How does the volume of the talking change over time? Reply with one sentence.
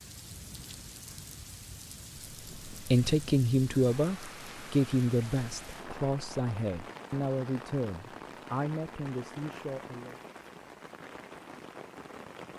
The loudness of the talking goes down.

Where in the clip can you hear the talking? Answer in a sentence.
You can hear the talking from 2.7 to 10.2 s.